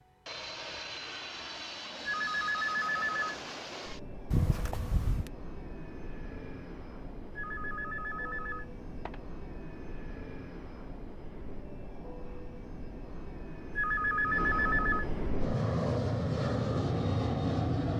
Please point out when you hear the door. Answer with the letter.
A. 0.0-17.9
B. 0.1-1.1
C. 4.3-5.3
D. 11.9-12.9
C.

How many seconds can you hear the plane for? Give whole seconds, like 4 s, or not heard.
18 s.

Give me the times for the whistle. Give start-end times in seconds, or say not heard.
not heard.